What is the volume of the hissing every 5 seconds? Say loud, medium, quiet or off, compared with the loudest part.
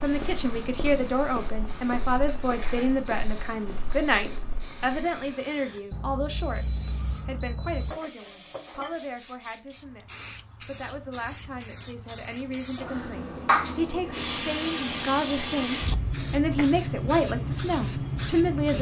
quiet, quiet, loud, loud.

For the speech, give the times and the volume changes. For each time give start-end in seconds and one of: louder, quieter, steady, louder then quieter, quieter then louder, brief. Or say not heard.
0.0-18.7 quieter then louder.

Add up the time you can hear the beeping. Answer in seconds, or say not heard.
2 s.